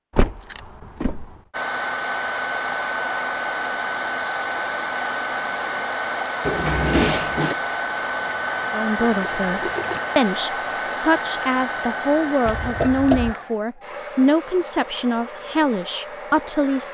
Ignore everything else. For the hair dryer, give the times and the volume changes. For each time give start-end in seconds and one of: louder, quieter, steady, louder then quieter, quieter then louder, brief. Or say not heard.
1.5-16.8 quieter.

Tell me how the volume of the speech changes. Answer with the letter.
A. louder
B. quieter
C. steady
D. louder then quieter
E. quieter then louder
C.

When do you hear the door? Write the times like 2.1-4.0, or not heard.
0.1-1.4, 6.5-7.5, 12.4-13.3.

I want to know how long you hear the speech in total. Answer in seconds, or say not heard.
8 s.